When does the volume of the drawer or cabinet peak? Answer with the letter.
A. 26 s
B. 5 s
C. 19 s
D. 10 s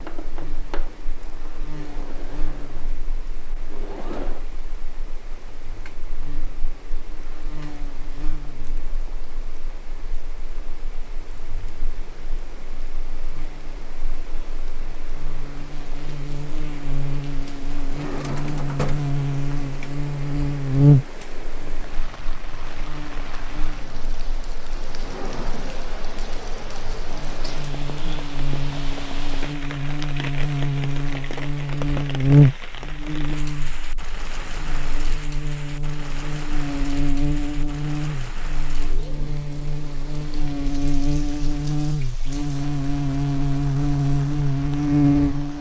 C.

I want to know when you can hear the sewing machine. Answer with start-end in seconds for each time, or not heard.
0.0-4.5.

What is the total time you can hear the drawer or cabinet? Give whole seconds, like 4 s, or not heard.
3 s.